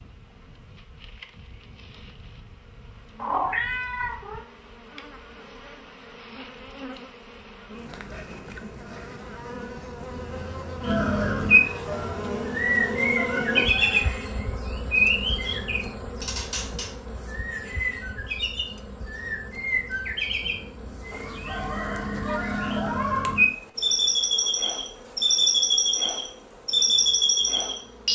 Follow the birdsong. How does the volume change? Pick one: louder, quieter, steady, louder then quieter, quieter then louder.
quieter then louder.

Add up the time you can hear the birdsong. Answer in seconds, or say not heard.
17 s.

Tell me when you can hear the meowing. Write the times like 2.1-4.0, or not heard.
3.1-4.4, 13.1-14.2, 22.2-23.4.